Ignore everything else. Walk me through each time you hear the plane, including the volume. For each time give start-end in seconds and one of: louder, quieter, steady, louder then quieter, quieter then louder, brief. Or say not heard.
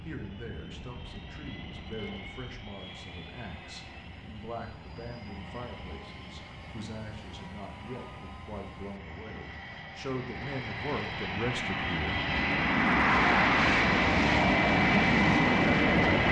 0.0-16.2 louder.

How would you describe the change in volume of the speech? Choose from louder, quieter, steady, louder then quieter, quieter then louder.
louder.